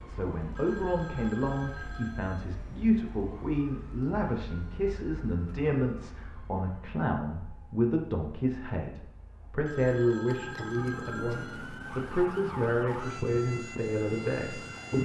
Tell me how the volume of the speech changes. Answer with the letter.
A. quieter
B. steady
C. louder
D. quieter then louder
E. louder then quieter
B.